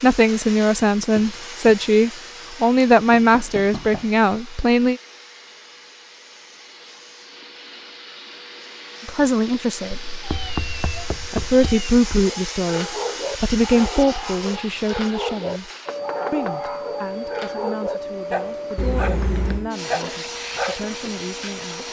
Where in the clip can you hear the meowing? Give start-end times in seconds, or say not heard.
1.1-1.8, 9.9-11.9, 18.8-19.7.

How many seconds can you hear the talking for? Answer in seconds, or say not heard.
16 s.